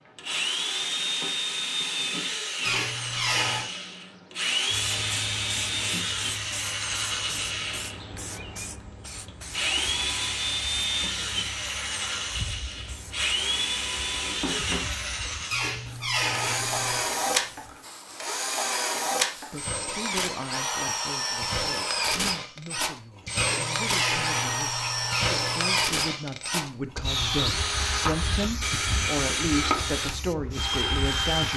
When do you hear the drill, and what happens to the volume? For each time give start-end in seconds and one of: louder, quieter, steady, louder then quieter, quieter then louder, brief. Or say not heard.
0.1-31.5 steady.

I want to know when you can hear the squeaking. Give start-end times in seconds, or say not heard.
2.6-3.6, 15.5-17.1, 23.4-25.9.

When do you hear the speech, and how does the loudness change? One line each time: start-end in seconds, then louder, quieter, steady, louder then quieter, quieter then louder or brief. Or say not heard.
19.5-31.5 louder.